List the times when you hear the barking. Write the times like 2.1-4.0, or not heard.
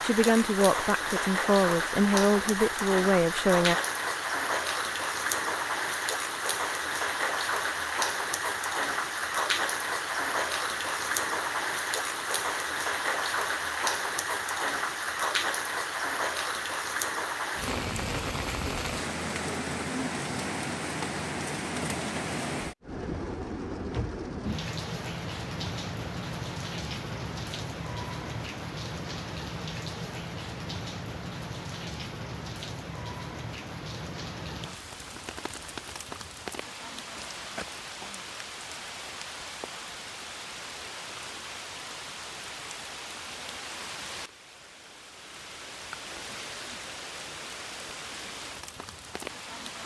not heard.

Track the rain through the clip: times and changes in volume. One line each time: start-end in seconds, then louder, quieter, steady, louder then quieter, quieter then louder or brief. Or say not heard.
0.0-49.8 quieter.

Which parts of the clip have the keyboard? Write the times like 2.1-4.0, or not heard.
not heard.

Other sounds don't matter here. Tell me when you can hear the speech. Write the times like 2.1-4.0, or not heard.
0.0-3.8.